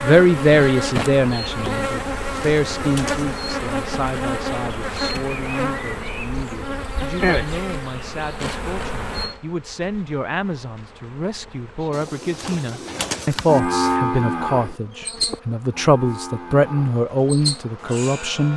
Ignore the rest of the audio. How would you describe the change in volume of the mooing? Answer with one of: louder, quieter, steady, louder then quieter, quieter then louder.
quieter then louder.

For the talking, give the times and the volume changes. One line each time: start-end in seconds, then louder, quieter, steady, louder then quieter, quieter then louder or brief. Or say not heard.
0.0-18.5 quieter then louder.